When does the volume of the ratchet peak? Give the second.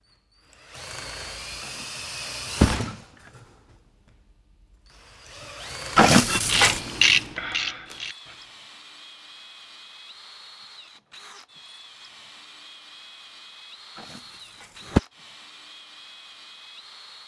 7 s.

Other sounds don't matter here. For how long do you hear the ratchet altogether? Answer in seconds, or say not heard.
2 s.